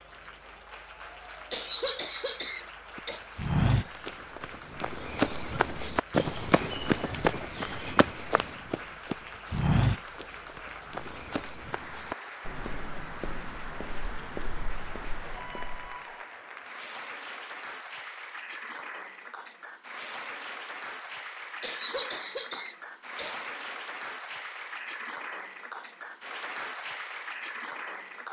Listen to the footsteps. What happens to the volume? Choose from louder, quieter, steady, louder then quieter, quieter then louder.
quieter.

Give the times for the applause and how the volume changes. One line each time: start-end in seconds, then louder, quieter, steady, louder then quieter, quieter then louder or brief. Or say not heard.
0.0-28.2 louder.